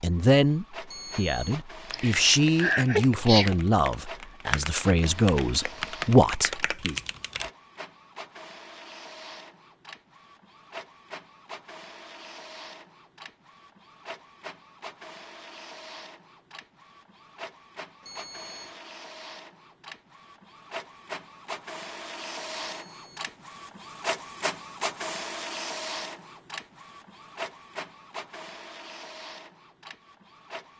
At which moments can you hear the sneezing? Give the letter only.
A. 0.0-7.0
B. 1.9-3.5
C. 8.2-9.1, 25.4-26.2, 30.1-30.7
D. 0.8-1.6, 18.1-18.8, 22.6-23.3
B.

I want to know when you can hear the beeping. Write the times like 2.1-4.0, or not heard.
0.8-1.6, 18.1-18.8, 22.6-23.3.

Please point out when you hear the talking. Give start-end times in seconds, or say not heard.
0.0-7.0.